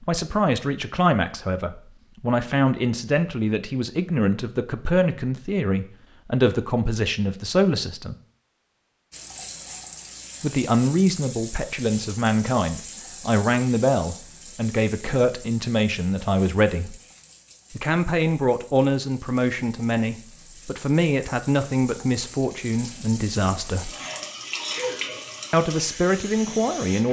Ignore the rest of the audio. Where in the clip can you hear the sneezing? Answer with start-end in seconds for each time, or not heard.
24.6-25.1.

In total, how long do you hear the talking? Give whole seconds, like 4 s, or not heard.
22 s.